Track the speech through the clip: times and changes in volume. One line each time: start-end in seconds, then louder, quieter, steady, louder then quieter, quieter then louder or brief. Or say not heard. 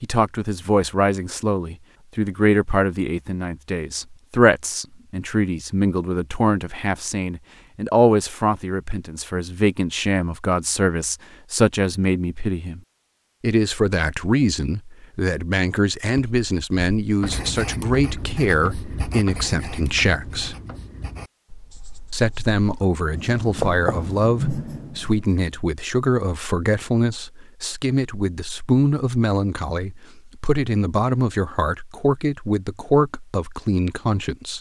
0.0-12.8 steady
13.4-20.6 steady
22.1-34.5 steady.